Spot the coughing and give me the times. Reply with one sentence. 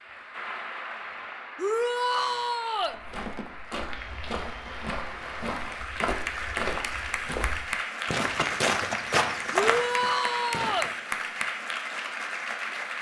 The coughing can't be heard in this clip.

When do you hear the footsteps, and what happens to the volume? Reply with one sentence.
The footsteps can be heard from 2.9 to 10.9 s, getting louder.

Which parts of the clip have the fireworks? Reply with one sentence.
The fireworks can't be heard in this clip.